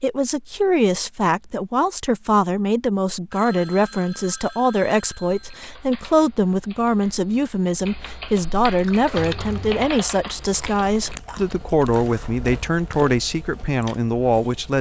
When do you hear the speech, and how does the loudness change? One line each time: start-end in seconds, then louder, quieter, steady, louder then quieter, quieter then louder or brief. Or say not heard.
0.0-14.7 steady.